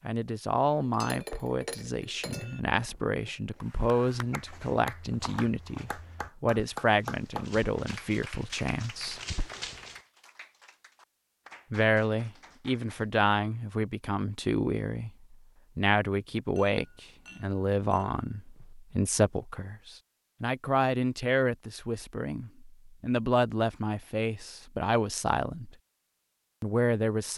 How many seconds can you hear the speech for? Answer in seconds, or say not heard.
24 s.